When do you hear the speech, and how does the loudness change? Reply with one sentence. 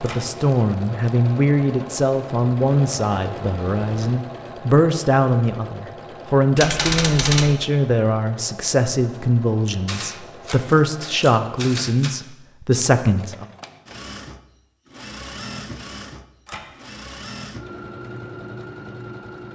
The speech can be heard from 0.0 to 13.4 s, at a steady volume.